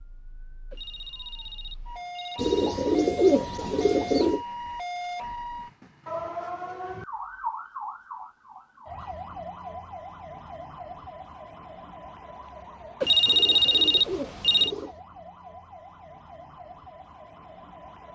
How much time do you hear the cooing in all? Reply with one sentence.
The cooing can be heard for 4 seconds in total.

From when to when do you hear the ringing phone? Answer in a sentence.
You can hear the ringing phone from 0.7 to 2.7 s and from 13.0 to 14.7 s.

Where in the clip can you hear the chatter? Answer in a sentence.
The chatter can't be heard in this clip.